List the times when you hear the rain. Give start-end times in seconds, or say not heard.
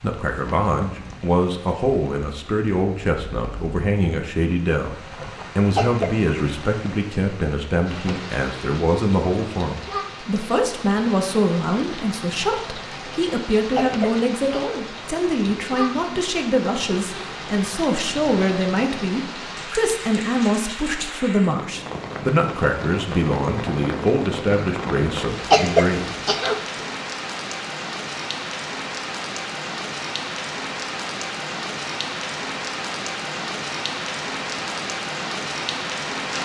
0.0-36.3.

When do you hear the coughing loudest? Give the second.
26 s.